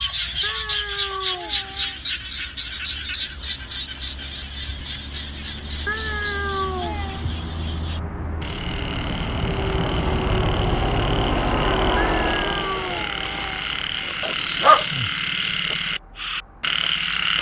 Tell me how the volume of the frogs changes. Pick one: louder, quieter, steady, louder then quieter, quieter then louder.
quieter then louder.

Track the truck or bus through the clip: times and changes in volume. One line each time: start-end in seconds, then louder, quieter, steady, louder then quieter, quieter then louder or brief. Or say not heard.
0.0-17.3 louder then quieter.